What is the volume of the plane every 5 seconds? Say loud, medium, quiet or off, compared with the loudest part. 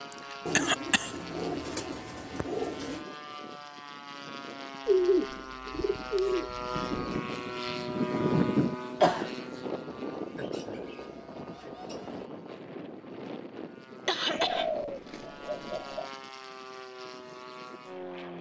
medium, loud, medium, medium.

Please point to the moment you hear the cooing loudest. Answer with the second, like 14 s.
5 s.